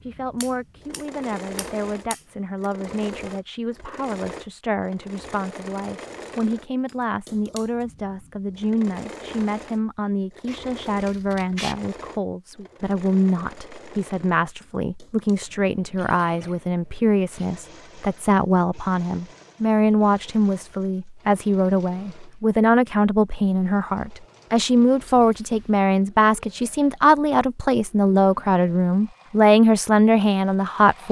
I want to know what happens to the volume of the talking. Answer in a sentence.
The loudness of the talking goes up.